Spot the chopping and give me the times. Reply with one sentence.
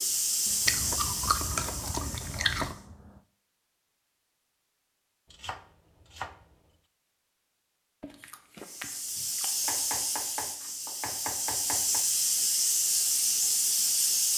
You can hear the chopping from 0.5 to 3.2 s, from 5.3 to 6.5 s and from 9.6 to 12.1 s.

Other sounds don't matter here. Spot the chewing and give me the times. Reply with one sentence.
You can hear the chewing from 0.7 to 2.8 s and from 8.0 to 9.6 s.